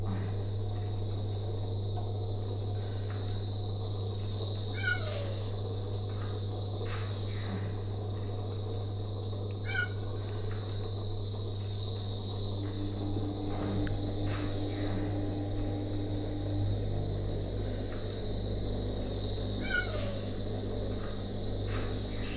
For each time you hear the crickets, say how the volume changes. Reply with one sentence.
The crickets can be heard from 0.0 to 22.3 s, at a steady volume.